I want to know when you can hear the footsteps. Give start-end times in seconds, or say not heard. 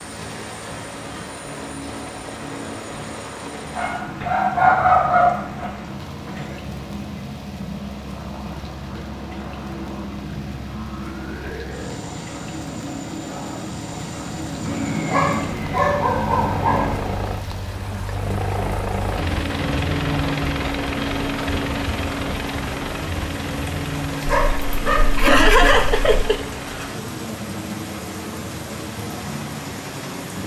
not heard.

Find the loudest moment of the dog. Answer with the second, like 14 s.
5 s.